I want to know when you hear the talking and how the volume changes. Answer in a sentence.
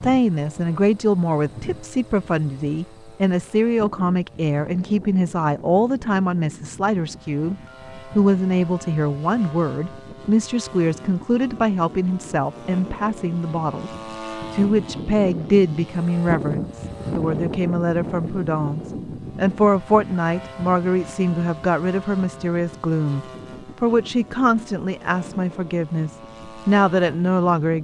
The talking can be heard from 0.0 to 13.9 s, at a steady volume; and from 14.5 to 27.7 s, at a steady volume.